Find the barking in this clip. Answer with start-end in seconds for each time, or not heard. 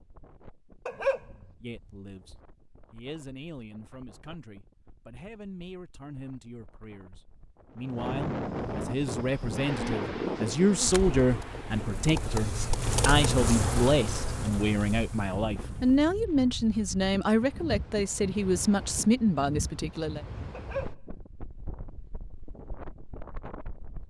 0.8-1.2, 20.5-20.9.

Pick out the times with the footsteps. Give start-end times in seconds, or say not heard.
not heard.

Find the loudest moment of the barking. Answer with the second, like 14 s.
1 s.